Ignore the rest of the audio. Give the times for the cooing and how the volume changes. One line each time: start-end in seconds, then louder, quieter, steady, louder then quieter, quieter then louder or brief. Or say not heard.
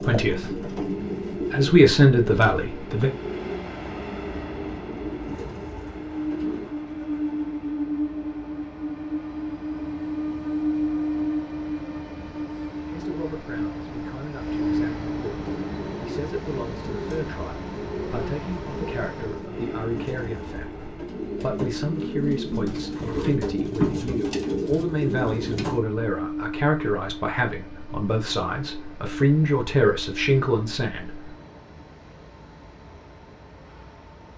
0.0-6.7 quieter
15.3-25.8 louder.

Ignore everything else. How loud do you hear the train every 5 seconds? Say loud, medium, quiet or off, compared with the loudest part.
medium, loud, loud, medium, medium, medium, quiet.